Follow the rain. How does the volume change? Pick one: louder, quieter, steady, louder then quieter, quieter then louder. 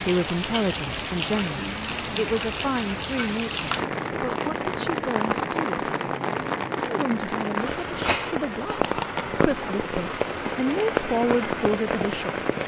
steady.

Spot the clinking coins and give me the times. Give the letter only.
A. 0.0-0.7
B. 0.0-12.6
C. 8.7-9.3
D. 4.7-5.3
C.